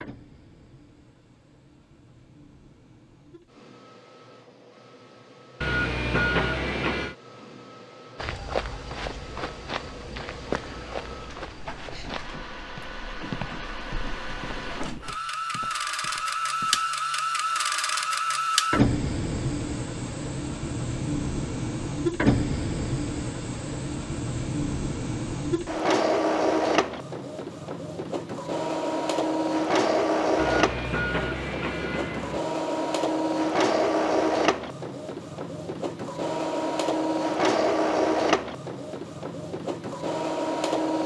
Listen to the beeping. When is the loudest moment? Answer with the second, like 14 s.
6 s.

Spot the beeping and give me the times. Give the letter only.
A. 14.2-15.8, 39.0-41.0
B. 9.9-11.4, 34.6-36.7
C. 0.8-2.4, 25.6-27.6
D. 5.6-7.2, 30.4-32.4
D.